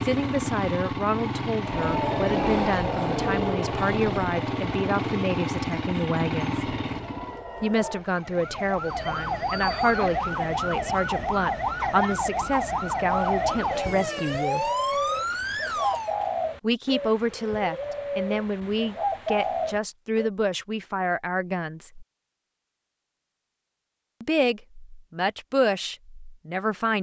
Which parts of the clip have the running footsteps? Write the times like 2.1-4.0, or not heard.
not heard.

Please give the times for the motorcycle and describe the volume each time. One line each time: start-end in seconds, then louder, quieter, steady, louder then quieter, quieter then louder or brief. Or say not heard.
0.0-7.5 steady.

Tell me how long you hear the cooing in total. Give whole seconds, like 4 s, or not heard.
7 s.